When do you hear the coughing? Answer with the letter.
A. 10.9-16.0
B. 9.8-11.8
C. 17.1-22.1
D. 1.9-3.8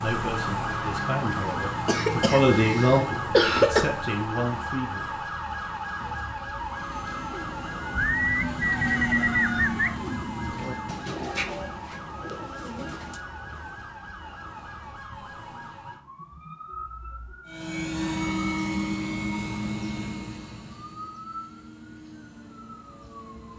D.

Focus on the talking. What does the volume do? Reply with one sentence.
The volume of the talking goes up, then down.